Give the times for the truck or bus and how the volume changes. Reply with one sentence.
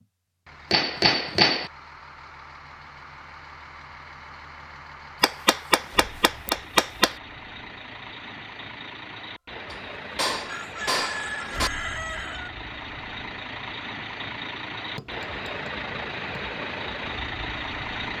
You can hear the truck or bus from 0.0 to 18.1 s, getting louder.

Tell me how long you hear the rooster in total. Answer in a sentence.
The rooster can be heard for 2 seconds in total.